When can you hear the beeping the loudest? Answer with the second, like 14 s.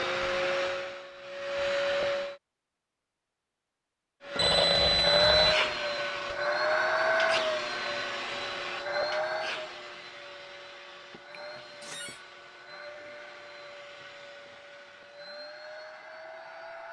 5 s.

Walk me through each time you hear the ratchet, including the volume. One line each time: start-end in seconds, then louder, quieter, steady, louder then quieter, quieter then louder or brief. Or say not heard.
not heard.